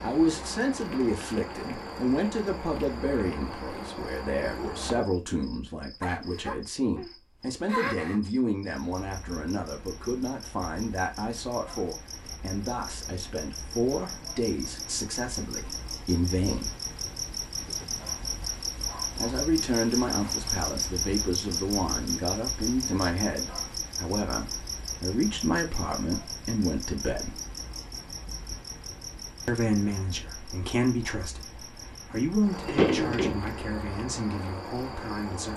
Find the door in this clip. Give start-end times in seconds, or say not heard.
32.6-33.5.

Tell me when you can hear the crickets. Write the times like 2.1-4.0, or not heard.
0.0-35.5.